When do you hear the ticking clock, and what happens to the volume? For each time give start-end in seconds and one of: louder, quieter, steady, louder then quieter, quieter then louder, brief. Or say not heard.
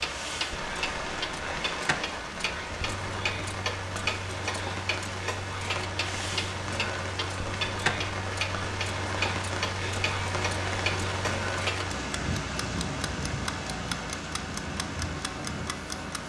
0.0-16.2 steady.